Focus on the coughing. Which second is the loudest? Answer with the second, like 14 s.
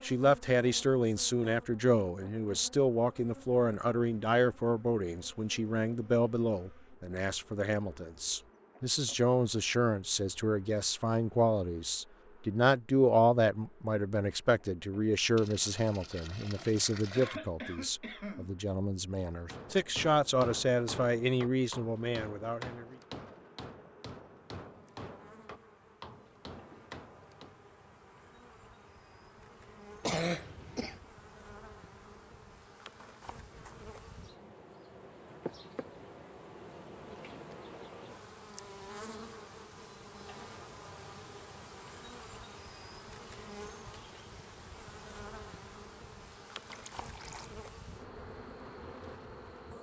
30 s.